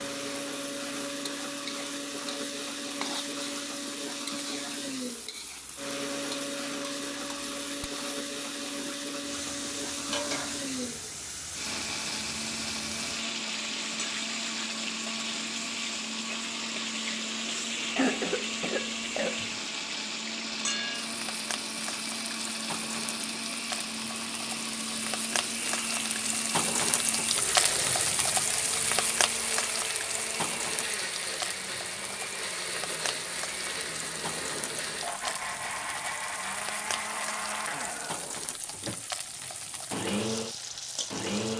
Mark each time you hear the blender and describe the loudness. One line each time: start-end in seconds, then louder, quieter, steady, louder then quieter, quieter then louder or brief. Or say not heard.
0.0-41.5 steady.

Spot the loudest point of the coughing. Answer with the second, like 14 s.
18 s.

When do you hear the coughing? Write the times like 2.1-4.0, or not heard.
17.9-19.5.